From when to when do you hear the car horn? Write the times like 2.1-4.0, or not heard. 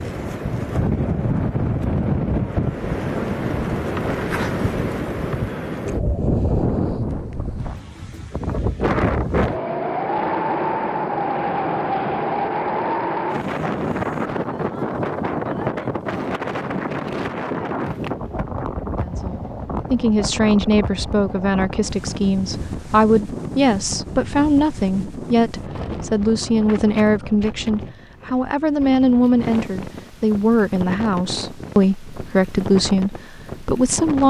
not heard.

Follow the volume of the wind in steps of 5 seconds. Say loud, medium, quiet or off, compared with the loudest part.
loud, loud, loud, loud, medium, medium, medium.